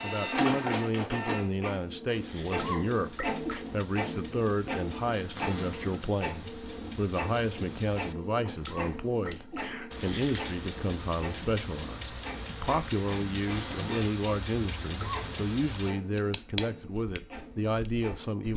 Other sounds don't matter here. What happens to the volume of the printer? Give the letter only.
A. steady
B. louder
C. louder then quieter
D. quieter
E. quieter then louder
D.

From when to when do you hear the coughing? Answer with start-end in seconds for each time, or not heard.
2.4-3.6, 8.4-9.9, 14.8-15.3.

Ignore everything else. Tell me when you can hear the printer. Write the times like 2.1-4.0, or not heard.
0.0-18.4.